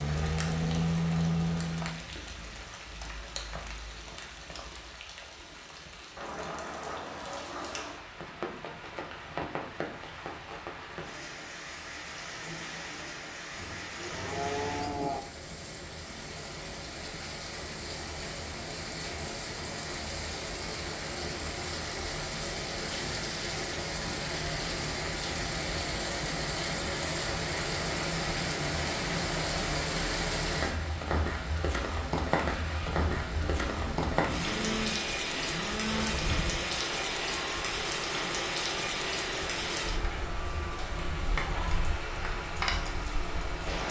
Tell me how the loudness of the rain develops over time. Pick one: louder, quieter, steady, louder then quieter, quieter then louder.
louder.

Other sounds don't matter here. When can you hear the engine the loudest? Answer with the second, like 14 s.
1 s.